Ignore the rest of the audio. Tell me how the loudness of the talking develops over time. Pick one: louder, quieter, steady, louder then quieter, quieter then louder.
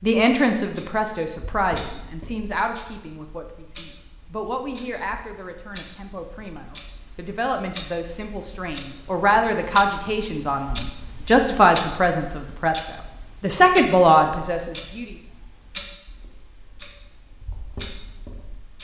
quieter then louder.